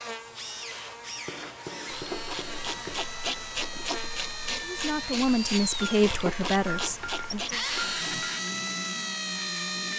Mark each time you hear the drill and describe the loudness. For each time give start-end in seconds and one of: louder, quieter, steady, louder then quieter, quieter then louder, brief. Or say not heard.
0.0-9.9 louder.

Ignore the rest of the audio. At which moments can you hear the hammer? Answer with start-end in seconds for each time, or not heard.
1.2-3.0, 5.8-8.4.